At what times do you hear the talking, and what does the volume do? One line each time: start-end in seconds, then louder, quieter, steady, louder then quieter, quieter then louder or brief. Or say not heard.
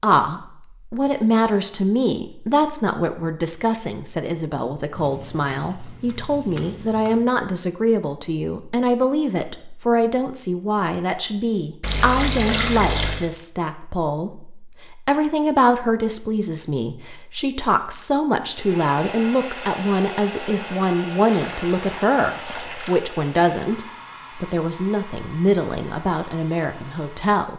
0.0-27.5 steady.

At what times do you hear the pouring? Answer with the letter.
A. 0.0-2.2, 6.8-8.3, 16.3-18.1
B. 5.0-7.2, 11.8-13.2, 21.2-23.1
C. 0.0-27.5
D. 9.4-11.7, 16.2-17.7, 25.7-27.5
B.